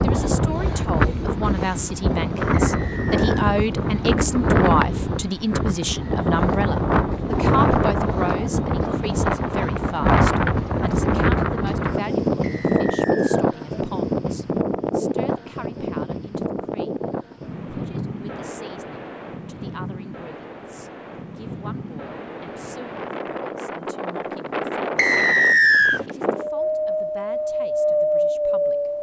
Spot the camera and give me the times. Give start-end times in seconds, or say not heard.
not heard.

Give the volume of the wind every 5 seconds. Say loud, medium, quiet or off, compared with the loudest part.
loud, loud, loud, medium, medium, loud.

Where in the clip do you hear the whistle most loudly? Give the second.
26 s.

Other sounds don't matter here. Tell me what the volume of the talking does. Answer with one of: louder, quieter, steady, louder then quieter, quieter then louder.
quieter.